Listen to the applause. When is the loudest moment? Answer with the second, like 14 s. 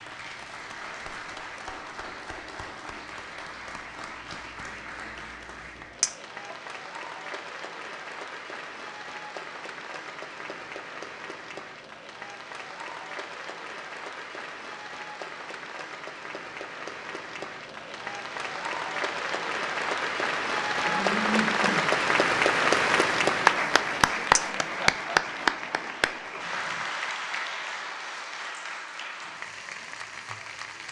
23 s.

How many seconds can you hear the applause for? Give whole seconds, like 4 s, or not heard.
31 s.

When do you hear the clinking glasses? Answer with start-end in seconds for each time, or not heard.
6.0-6.5, 24.4-24.9.